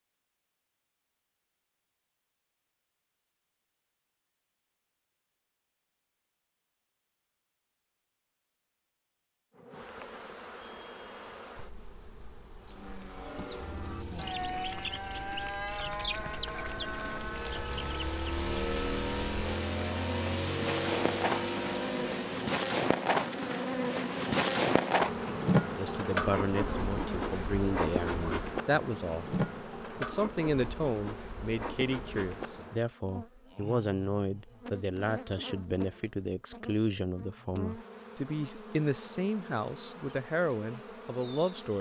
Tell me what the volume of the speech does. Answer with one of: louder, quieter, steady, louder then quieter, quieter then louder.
steady.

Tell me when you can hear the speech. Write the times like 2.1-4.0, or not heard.
25.6-41.7.